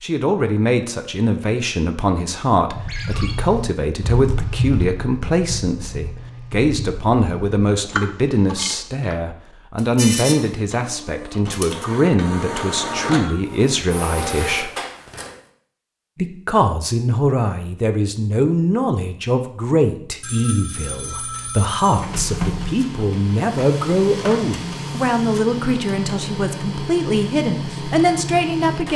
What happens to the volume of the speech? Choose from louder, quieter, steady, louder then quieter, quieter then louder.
steady.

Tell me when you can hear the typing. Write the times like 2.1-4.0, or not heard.
2.7-9.1.